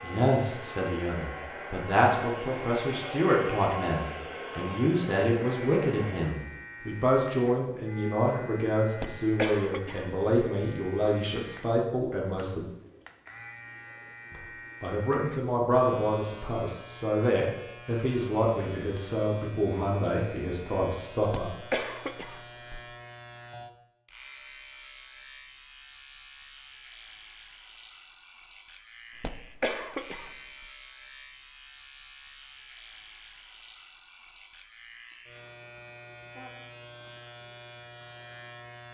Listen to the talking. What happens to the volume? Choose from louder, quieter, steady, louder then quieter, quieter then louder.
steady.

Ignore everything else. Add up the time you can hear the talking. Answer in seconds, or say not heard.
20 s.